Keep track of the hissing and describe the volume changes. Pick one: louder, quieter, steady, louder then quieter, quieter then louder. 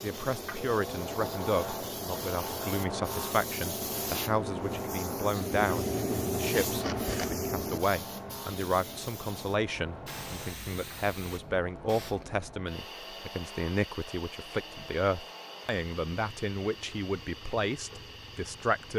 louder then quieter.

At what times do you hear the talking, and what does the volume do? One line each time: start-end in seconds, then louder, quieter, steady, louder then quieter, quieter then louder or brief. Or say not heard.
0.0-18.9 steady.